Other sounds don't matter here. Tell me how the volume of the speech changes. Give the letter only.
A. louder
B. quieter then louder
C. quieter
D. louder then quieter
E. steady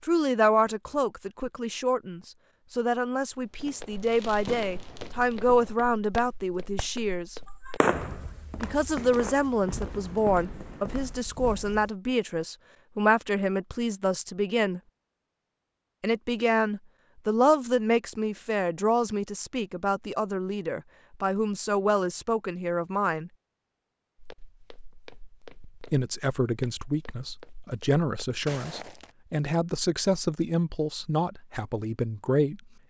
E.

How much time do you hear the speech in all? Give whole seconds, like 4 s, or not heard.
28 s.